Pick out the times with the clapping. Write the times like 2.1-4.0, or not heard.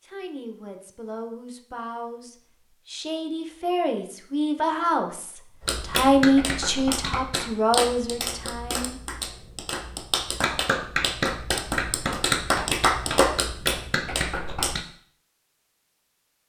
5.7-14.8.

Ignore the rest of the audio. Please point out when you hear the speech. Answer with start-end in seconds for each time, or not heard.
0.0-9.0.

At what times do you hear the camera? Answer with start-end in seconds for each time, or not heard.
not heard.